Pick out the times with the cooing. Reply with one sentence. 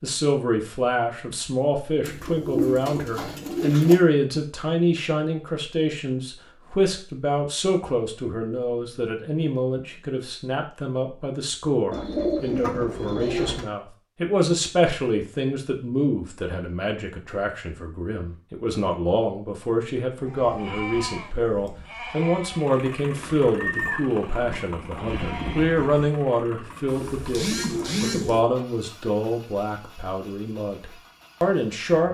You can hear the cooing from 2.0 to 4.0 s, from 11.9 to 13.7 s and from 26.9 to 28.4 s.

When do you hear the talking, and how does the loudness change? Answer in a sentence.
The talking can be heard from 0.0 to 32.0 s, at a steady volume.